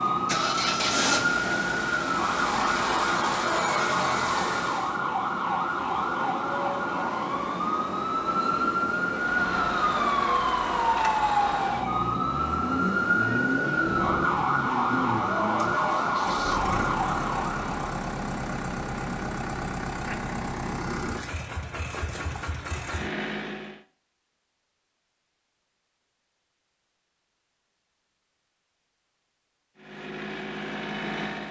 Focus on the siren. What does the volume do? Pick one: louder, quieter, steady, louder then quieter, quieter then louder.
steady.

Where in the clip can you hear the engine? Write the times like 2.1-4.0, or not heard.
0.2-5.0, 9.1-23.8, 29.8-31.4.